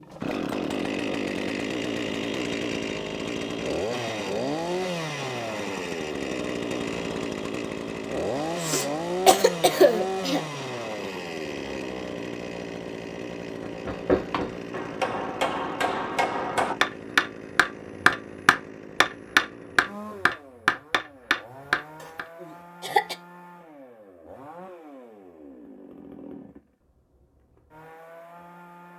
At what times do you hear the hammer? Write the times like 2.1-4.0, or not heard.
13.7-22.2.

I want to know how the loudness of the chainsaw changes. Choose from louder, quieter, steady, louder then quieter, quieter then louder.
quieter.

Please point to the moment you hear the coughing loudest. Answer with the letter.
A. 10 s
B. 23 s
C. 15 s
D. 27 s
A.